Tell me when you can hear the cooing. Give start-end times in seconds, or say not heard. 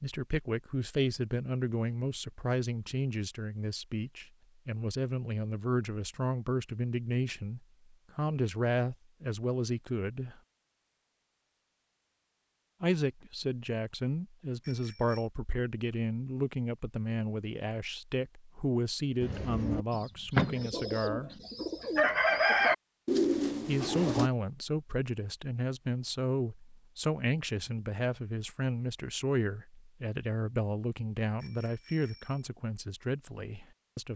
19.2-24.3.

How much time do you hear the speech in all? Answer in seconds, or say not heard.
29 s.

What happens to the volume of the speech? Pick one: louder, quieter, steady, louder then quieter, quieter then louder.
steady.